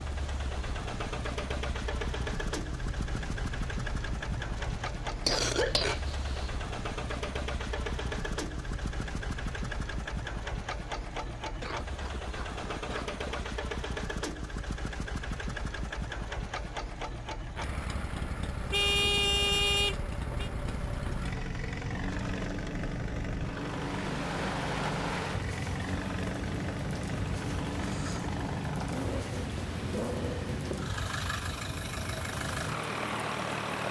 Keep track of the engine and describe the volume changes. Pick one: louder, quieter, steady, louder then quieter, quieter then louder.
steady.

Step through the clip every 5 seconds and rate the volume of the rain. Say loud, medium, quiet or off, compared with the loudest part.
medium, medium, medium, medium, loud, loud, loud.